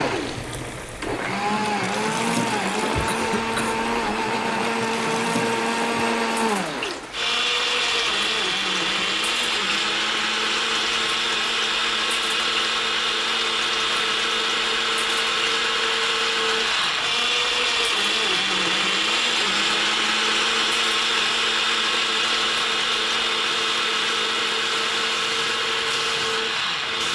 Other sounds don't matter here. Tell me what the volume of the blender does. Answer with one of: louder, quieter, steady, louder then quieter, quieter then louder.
steady.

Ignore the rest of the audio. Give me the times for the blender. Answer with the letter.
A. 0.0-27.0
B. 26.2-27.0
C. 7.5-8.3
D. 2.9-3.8
A.